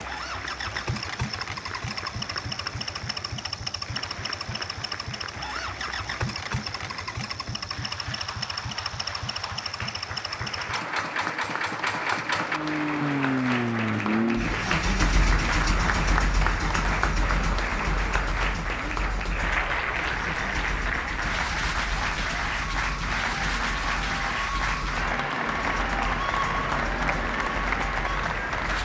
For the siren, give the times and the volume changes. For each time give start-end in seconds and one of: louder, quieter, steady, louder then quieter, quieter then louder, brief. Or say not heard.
19.5-28.8 louder.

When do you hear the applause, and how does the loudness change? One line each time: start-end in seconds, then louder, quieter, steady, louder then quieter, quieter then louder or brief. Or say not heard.
0.0-28.8 louder.